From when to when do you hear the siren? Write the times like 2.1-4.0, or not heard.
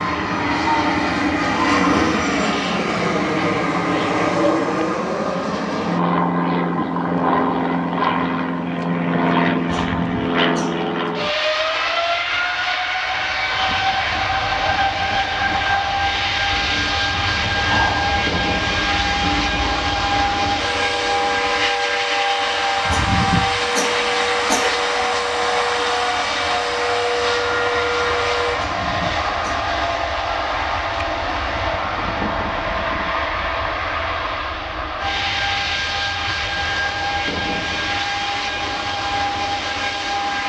0.0-2.2, 16.5-28.6.